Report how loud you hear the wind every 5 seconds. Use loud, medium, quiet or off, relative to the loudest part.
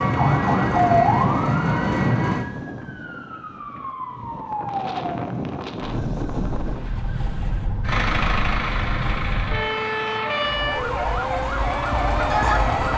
loud, loud, off.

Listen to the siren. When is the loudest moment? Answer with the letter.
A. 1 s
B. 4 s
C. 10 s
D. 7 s
A.